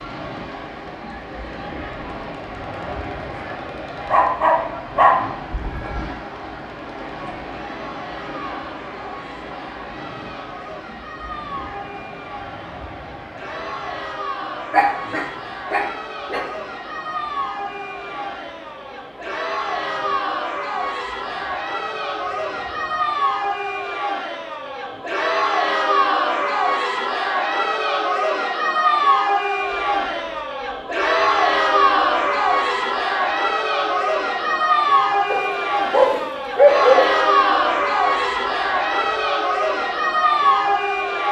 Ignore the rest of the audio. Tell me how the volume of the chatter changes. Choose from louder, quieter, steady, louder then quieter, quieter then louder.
louder.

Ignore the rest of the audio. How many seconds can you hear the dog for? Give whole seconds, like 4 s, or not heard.
6 s.